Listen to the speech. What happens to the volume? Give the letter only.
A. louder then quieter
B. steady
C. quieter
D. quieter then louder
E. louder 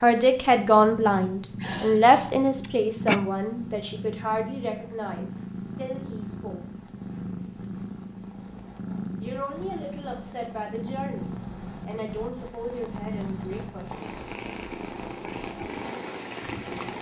C.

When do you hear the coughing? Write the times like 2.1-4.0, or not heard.
1.6-3.2.